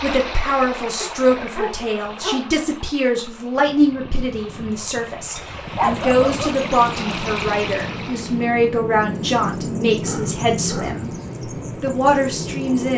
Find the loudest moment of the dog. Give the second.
6 s.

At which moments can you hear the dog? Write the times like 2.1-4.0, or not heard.
1.0-2.5, 5.3-6.7, 10.0-11.0.